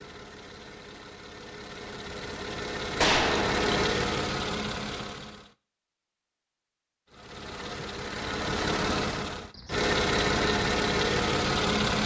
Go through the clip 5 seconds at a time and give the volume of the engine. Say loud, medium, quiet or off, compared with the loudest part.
medium, medium, loud.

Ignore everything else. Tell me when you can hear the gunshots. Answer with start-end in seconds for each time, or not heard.
3.0-3.8.